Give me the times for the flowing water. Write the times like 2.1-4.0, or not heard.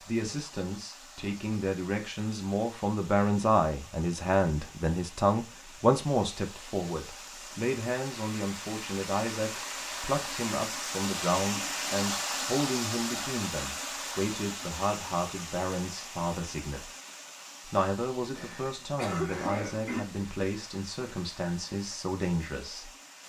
0.0-23.2.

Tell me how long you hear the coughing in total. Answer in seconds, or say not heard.
2 s.